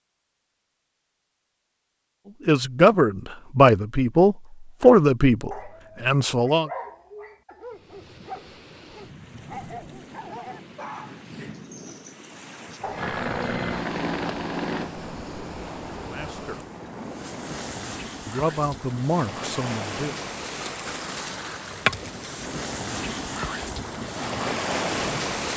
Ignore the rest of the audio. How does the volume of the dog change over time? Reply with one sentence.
The volume of the dog goes down.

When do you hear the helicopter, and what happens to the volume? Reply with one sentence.
The helicopter can be heard from 12.9 to 17.6 s, getting quieter.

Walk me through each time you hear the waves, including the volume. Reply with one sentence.
You can hear the waves from 7.7 to 25.5 s, getting louder.